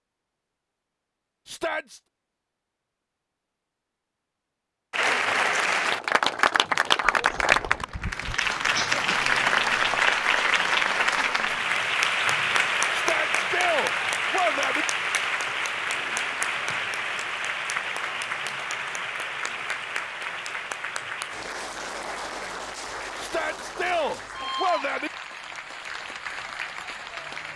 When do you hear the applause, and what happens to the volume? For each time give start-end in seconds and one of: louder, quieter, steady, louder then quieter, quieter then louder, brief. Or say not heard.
4.9-27.5 quieter.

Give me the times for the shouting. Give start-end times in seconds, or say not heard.
1.4-2.0, 12.9-14.8, 23.1-25.1.